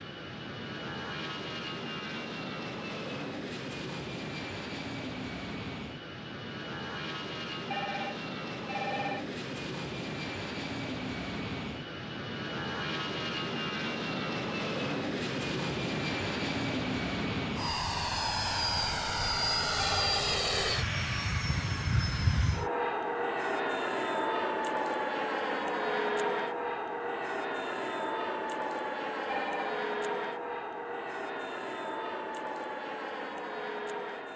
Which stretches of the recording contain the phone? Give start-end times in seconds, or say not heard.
7.7-9.2, 19.8-20.3, 29.2-29.8.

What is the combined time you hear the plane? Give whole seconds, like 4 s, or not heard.
34 s.